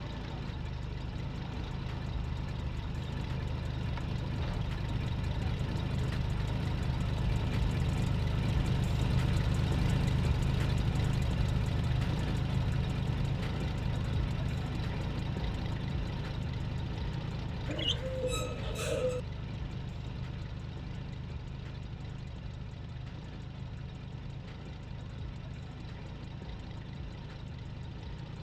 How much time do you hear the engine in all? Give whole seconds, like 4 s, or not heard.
28 s.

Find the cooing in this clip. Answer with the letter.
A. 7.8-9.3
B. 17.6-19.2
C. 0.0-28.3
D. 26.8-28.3
B.